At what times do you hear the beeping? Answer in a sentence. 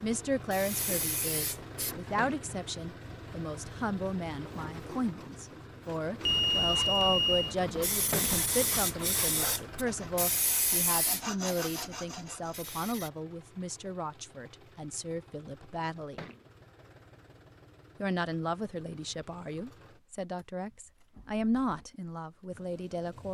You can hear the beeping from 6.2 to 7.5 s.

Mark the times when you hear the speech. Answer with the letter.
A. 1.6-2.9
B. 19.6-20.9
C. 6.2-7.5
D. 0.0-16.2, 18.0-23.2
D.